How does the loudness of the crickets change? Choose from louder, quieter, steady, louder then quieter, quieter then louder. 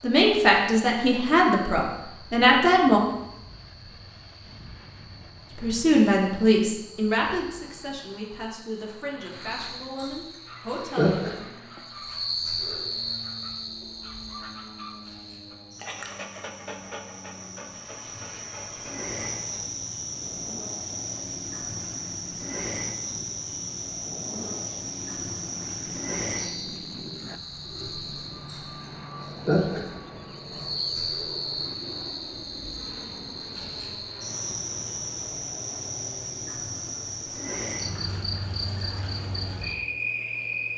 louder.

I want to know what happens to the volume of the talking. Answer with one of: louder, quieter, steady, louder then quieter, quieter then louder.
quieter.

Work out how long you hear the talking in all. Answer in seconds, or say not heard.
9 s.